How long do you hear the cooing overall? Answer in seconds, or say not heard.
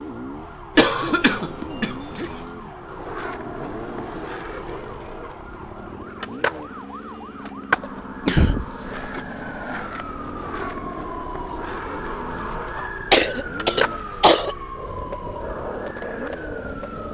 not heard.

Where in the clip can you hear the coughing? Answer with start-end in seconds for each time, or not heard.
0.8-2.4, 8.2-9.2, 12.8-14.6.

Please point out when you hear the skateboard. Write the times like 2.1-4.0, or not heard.
2.8-17.0.